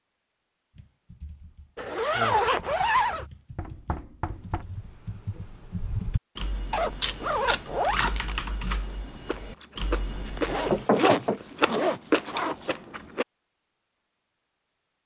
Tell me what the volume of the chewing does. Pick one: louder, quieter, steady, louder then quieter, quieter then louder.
quieter then louder.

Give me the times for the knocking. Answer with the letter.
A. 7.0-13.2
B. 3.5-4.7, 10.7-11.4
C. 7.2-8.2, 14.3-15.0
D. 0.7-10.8
B.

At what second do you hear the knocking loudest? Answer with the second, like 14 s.
11 s.